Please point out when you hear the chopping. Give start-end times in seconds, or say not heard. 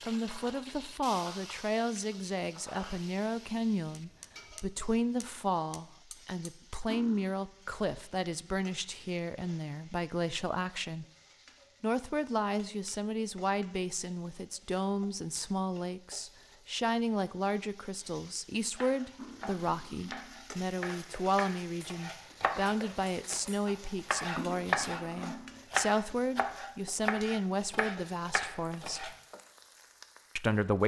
18.8-29.1.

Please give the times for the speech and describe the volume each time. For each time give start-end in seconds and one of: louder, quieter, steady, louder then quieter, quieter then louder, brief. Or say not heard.
0.1-11.1 steady
11.8-29.1 steady
30.4-30.8 brief.